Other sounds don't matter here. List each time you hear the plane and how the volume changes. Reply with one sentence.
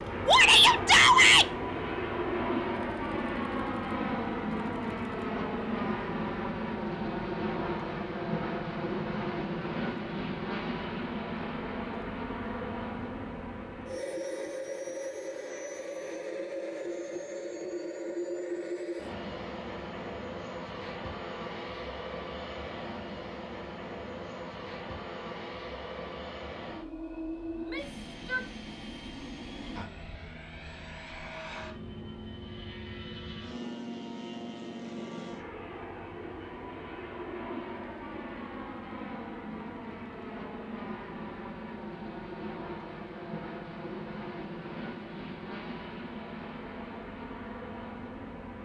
The plane can be heard from 0.0 to 48.6 s, getting quieter.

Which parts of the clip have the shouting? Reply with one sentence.
You can hear the shouting from 0.2 to 1.5 s and from 27.6 to 28.4 s.